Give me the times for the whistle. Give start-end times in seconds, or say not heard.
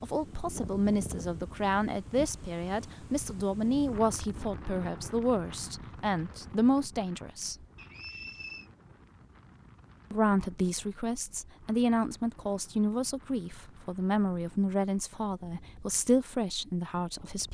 7.8-8.7.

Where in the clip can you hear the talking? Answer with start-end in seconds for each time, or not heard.
0.0-7.5, 10.1-17.4.